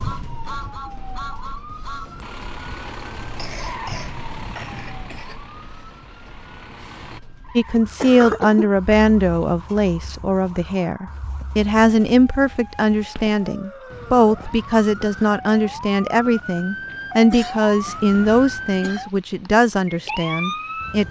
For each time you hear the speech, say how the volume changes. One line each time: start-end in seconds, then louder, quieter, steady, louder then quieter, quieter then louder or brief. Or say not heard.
7.5-21.0 steady.